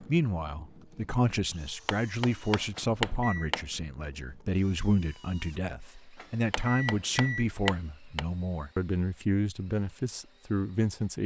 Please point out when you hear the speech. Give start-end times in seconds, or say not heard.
0.0-11.2.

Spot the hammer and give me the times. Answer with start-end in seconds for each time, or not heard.
1.9-3.6, 6.5-8.2.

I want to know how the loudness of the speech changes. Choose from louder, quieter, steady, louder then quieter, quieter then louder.
steady.